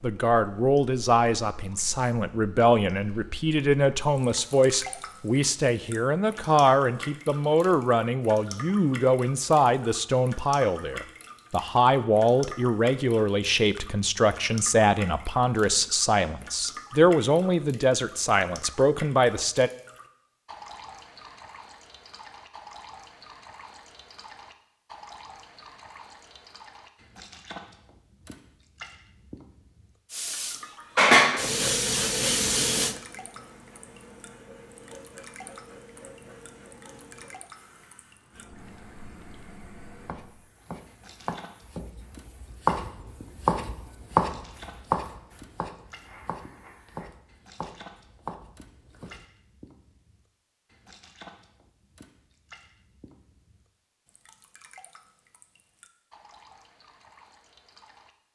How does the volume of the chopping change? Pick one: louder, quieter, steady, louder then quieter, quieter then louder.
louder then quieter.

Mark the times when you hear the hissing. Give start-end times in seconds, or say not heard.
30.1-47.1.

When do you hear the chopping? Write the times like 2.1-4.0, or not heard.
39.5-49.2.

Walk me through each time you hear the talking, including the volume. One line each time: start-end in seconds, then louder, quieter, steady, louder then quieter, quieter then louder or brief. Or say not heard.
0.0-19.7 steady.